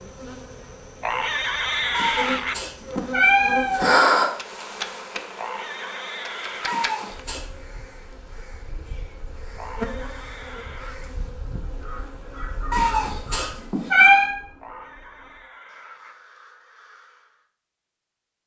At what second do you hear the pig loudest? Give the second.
2 s.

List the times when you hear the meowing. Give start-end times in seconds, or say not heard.
1.9-4.3, 6.7-7.4, 12.7-14.3.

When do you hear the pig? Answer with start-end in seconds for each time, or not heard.
1.0-2.6, 5.3-6.8, 9.6-11.1, 14.6-16.2.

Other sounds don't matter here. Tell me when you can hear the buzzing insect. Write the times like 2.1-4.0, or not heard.
0.0-13.7.